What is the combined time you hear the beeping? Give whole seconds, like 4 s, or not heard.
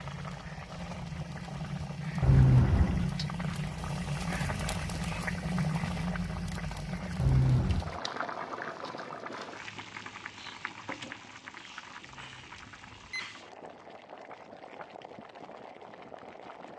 3 s.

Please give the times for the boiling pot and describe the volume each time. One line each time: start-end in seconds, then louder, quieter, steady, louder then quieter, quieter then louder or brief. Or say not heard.
0.0-16.7 quieter.